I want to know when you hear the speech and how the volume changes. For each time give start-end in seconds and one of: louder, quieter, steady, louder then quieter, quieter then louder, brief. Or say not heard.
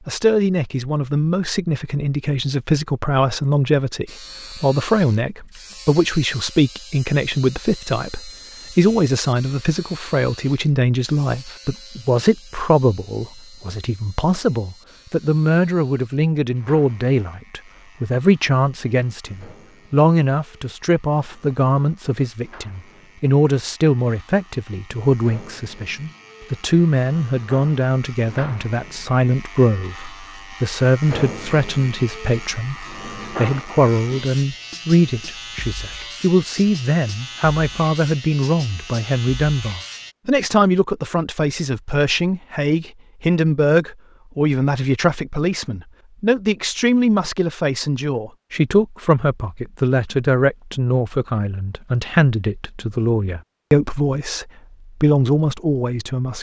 0.1-56.3 steady.